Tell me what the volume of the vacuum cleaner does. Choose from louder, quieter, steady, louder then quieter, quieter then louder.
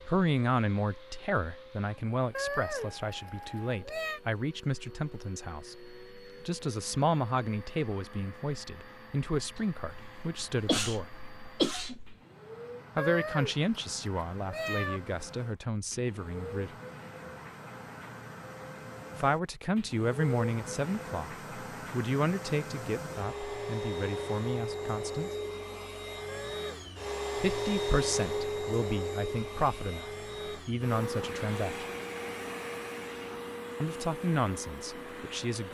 louder.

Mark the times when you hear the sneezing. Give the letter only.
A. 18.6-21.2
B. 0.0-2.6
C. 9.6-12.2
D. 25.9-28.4
C.